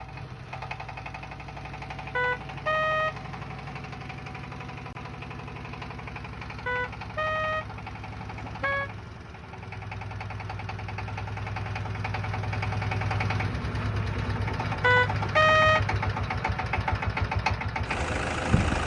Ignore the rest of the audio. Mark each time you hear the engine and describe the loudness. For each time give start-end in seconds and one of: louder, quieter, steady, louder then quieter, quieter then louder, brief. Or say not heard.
0.0-18.8 louder.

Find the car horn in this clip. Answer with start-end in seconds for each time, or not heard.
2.1-3.9, 6.7-8.9, 14.8-15.8.